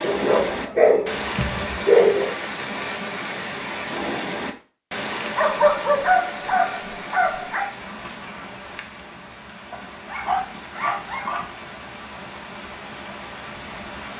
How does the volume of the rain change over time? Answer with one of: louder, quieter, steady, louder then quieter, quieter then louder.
quieter.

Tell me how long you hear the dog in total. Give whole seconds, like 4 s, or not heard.
6 s.